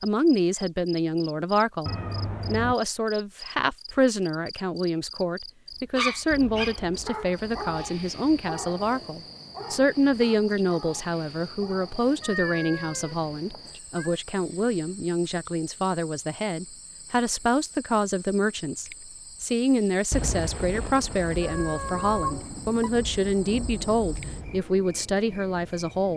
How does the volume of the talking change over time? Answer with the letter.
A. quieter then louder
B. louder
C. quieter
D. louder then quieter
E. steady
E.